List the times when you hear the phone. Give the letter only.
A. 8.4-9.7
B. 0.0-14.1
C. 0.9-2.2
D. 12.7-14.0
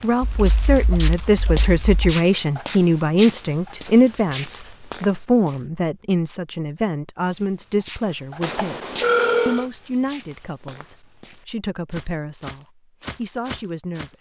A.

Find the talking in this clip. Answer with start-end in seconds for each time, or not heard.
0.0-14.1.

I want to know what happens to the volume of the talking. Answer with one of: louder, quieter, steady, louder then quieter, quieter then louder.
quieter.